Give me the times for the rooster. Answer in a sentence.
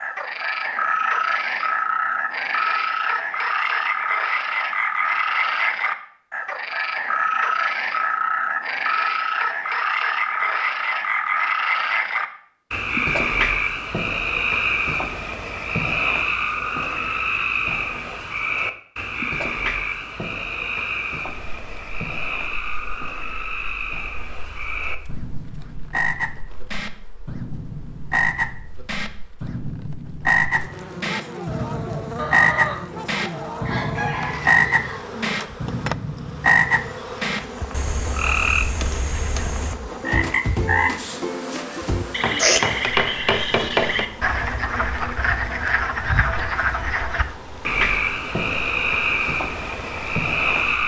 The rooster can be heard from 32.1 to 35.1 s.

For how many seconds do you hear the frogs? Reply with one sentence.
The frogs can be heard for 51 seconds in total.